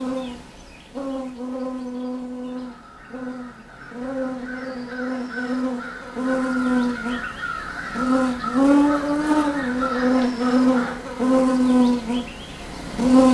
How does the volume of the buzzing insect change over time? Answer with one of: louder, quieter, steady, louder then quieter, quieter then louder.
louder.